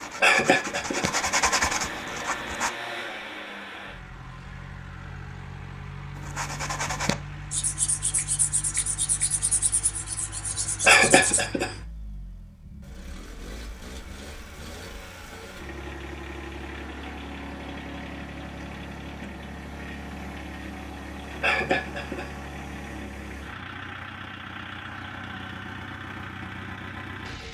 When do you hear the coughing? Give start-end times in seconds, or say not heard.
0.2-1.1, 10.8-11.8, 21.4-22.3.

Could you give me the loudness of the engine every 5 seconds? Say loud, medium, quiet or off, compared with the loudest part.
loud, loud, medium, loud, loud, loud.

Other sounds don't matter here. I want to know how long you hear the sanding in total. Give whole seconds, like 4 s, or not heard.
8 s.